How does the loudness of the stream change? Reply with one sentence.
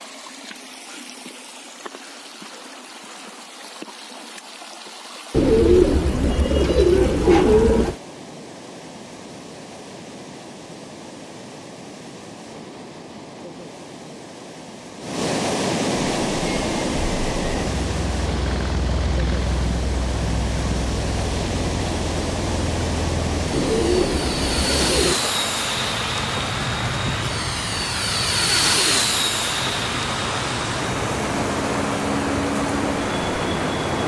The volume of the stream goes up.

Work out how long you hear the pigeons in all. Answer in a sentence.
The pigeons can be heard for 4 seconds in total.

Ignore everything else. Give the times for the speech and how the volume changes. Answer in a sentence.
You can't hear the speech here.